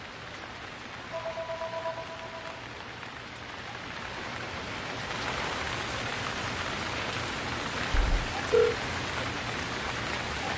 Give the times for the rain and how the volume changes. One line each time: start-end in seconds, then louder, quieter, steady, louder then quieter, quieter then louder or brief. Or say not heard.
0.0-10.5 louder.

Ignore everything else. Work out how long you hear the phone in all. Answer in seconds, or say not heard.
2 s.